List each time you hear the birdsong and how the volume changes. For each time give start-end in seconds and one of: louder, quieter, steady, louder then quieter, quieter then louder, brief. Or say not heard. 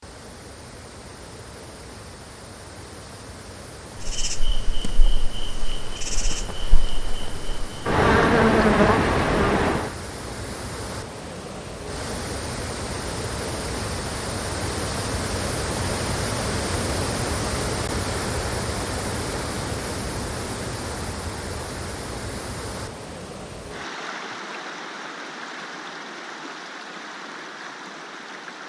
not heard.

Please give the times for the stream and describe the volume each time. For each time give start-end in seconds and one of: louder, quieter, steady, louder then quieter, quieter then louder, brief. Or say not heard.
0.0-28.6 louder then quieter.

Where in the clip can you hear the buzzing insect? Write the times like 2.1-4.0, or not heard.
4.0-9.9.